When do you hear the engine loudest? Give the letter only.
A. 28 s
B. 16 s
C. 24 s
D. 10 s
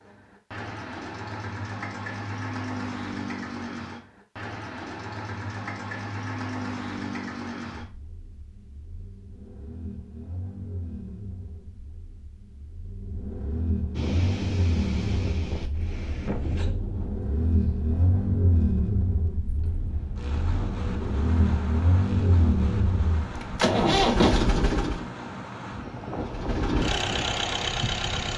C.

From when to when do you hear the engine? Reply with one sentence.
You can hear the engine from 0.0 to 25.1 s and from 26.2 to 28.3 s.